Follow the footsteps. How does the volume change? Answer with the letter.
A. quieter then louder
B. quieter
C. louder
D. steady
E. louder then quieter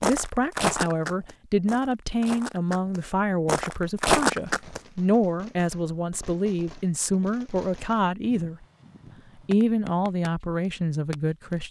A.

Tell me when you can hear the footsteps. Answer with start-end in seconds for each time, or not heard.
0.0-4.8.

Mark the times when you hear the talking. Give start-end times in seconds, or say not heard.
0.0-8.7, 9.4-11.6.